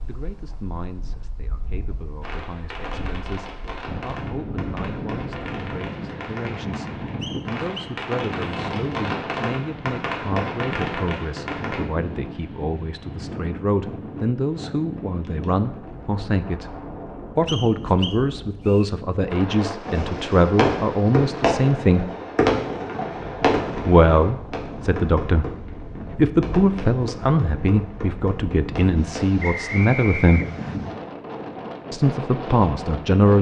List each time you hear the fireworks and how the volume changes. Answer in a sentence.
You can hear the fireworks from 2.2 to 11.8 s, getting louder; and from 19.8 to 29.4 s, getting quieter.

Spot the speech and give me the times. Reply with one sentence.
The speech can be heard from 0.1 to 22.1 s, from 23.9 to 30.4 s and from 31.9 to 33.3 s.